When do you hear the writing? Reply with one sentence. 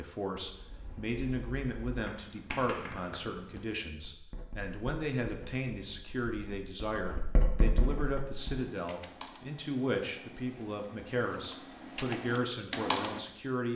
You can hear the writing from 0.4 to 8.7 s.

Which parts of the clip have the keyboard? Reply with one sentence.
The keyboard can be heard from 8.1 to 13.2 s.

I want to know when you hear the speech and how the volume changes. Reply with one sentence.
The speech can be heard from 0.0 to 13.7 s, at a steady volume.